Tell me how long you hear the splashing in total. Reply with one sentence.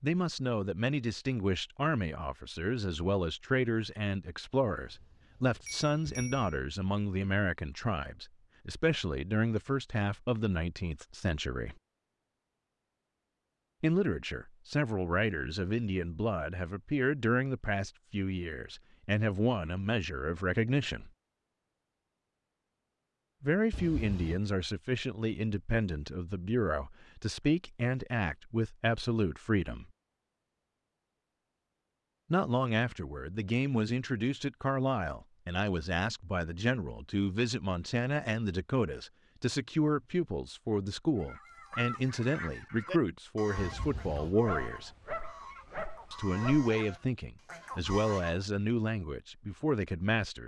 You can't hear the splashing here.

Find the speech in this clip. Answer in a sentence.
You can hear the speech from 0.0 to 11.8 s, from 13.8 to 21.1 s, from 23.4 to 29.9 s, from 32.3 to 44.9 s and from 46.1 to 50.4 s.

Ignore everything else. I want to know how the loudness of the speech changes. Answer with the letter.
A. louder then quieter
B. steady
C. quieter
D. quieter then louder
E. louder
B.